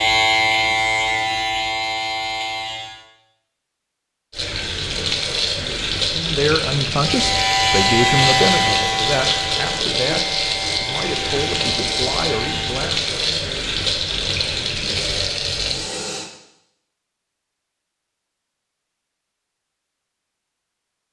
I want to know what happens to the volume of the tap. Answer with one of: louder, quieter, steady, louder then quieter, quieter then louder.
steady.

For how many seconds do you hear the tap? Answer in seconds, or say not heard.
12 s.